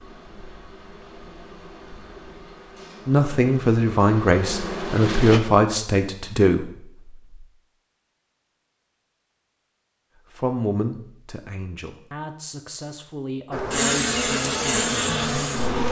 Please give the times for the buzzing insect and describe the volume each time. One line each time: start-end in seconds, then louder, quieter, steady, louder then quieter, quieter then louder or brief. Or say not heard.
0.0-5.4 louder
13.5-15.8 brief.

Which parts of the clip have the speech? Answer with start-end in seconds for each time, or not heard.
3.0-7.0, 10.3-15.8.